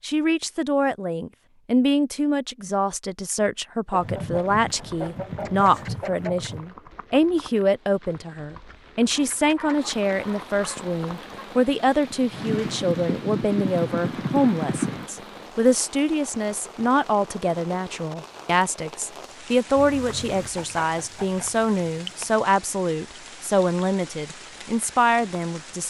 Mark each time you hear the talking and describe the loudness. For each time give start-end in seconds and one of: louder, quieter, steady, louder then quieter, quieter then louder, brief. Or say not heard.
0.0-25.8 steady.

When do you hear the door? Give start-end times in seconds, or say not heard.
not heard.